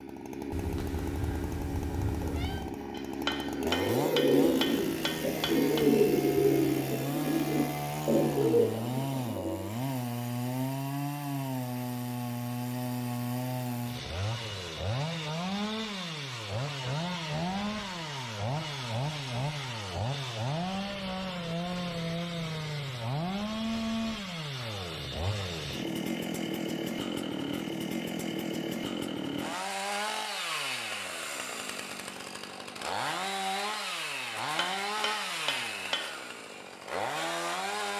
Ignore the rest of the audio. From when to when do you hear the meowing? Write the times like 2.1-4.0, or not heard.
0.5-2.8.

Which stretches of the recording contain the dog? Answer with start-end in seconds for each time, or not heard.
not heard.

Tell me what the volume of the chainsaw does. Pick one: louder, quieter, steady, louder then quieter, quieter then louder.
steady.